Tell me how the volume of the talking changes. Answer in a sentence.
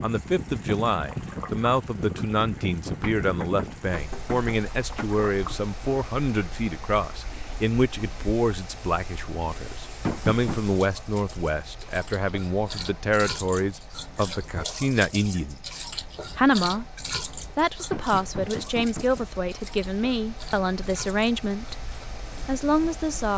The volume of the talking stays about the same.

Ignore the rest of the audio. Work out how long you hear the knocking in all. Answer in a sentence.
You can hear the knocking for 4 seconds altogether.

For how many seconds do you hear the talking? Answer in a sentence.
You can hear the talking for 23 seconds altogether.